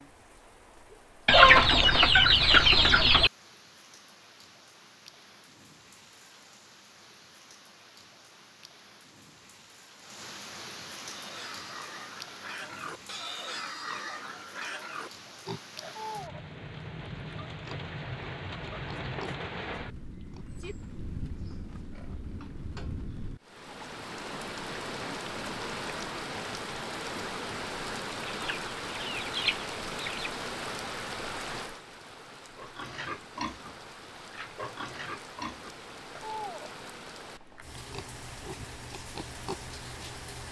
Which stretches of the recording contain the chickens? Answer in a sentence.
The chickens can be heard from 1.2 to 3.3 s and from 28.2 to 30.3 s.